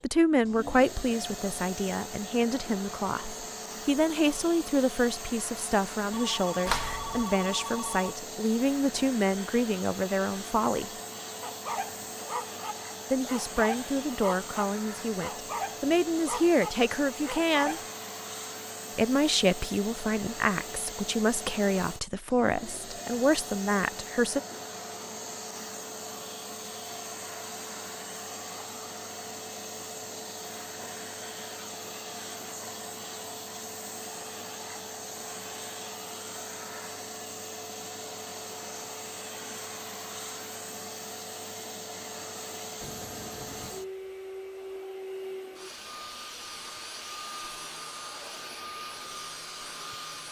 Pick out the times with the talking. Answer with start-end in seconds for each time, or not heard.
0.0-10.9, 13.1-17.8, 18.9-24.4.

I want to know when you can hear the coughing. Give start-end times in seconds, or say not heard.
6.7-7.2.